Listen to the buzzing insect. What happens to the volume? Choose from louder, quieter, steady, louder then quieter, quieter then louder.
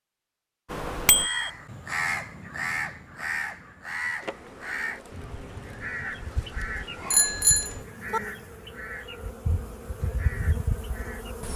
louder.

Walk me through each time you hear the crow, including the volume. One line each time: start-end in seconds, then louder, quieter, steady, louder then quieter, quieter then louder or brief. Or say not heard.
0.7-11.3 quieter.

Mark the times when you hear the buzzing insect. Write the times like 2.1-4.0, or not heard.
4.2-11.5.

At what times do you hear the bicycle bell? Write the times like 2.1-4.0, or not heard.
1.1-1.5, 7.1-8.2.